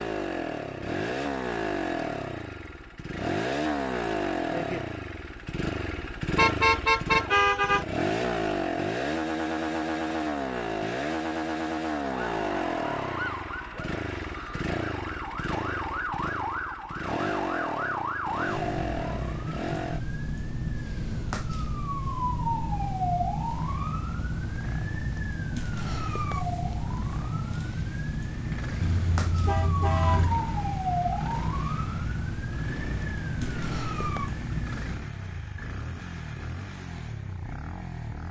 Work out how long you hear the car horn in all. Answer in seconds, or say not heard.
3 s.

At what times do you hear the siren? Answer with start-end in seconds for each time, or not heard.
12.2-35.0.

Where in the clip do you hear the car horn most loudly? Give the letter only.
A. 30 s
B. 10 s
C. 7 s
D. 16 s
C.